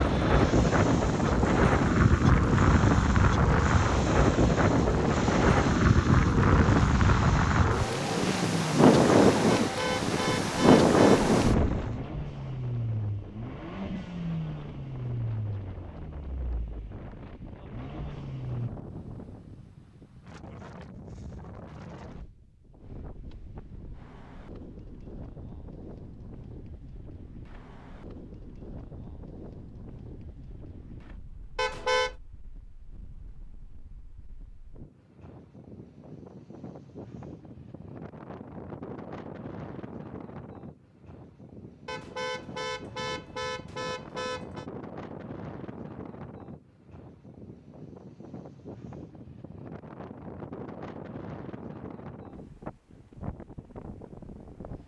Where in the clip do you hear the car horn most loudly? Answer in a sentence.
The volume of the car horn peaks at 32 seconds.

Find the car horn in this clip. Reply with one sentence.
The car horn can be heard from 9.6 to 11.2 s, from 31.6 to 32.1 s and from 41.9 to 44.6 s.